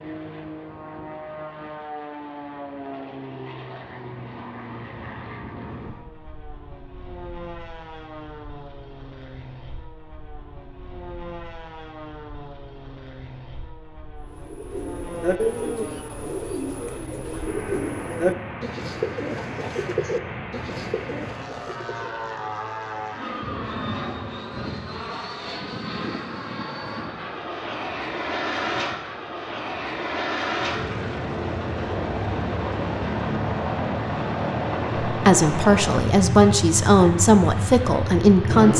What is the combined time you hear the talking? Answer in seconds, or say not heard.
4 s.